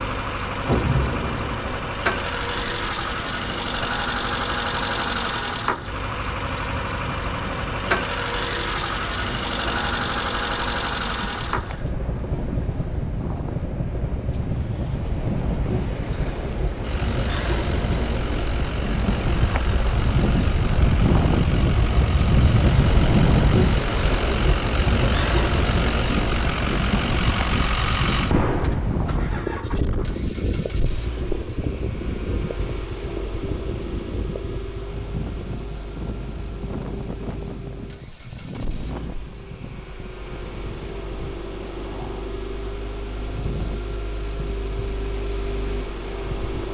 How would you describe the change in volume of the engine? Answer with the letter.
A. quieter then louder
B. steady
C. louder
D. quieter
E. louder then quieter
D.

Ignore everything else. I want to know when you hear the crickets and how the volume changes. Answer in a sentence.
You can't hear the crickets here.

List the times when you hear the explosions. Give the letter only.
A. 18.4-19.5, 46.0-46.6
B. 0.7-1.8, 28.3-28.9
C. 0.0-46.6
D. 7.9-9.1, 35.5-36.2
B.